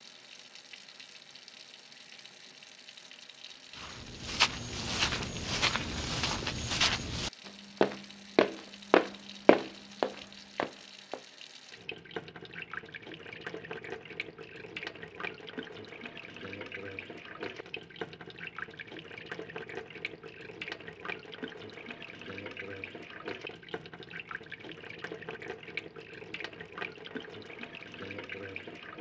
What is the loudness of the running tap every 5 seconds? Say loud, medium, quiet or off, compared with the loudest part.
medium, medium, loud, loud, loud, loud.